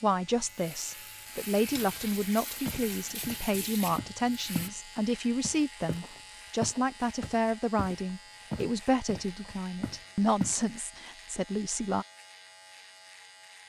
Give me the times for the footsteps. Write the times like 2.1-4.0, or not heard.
2.6-4.8, 5.4-10.6.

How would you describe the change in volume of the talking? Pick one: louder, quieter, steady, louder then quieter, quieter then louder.
steady.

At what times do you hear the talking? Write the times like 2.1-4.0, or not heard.
0.0-12.1.